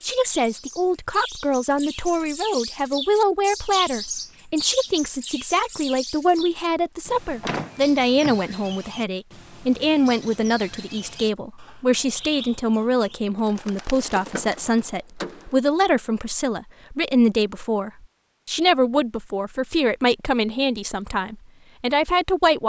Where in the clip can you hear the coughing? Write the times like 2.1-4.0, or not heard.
not heard.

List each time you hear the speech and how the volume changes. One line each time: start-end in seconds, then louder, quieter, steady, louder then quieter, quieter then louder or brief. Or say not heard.
0.0-22.6 steady.